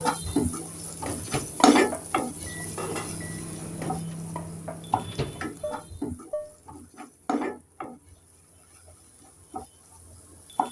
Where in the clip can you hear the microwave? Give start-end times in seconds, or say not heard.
0.0-6.0.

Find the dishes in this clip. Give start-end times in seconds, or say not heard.
0.2-6.5.